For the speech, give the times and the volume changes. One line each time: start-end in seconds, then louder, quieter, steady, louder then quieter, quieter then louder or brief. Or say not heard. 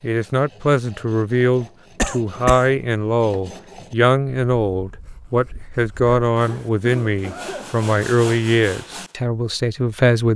0.0-10.3 steady.